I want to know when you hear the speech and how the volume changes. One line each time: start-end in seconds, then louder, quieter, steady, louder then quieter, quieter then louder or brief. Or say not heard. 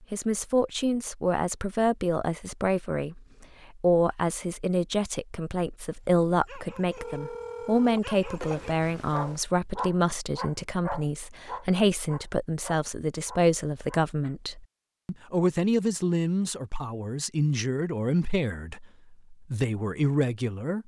0.0-20.8 steady.